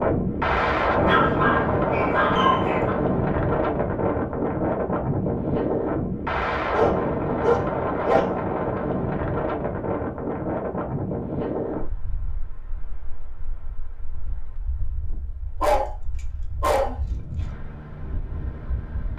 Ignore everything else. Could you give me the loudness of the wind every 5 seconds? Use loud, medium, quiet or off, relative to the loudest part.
loud, loud, medium, quiet.